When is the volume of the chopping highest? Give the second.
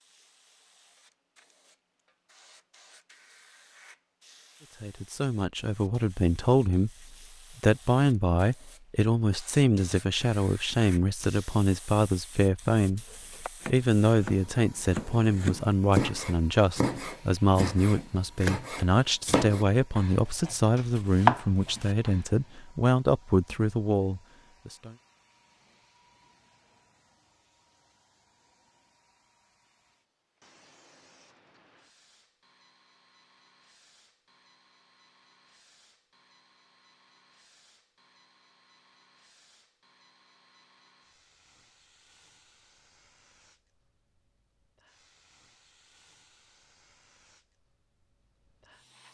21 s.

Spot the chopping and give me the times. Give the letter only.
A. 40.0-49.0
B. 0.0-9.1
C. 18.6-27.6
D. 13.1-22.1
D.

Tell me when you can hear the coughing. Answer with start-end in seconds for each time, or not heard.
not heard.